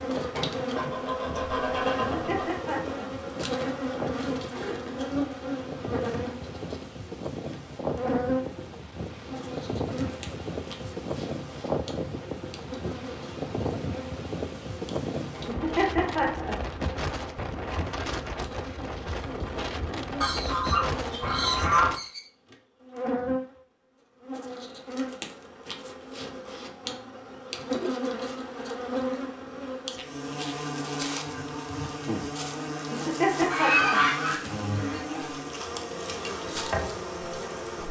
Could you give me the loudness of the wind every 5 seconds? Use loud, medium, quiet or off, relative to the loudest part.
medium, loud, loud, loud, loud, off, off, off.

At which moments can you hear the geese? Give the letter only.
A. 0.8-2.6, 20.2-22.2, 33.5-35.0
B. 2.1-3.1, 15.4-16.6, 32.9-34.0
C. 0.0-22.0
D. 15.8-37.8
A.